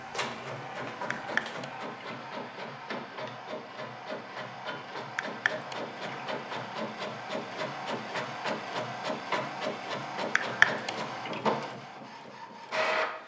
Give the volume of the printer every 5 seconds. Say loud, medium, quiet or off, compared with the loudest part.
medium, loud, loud.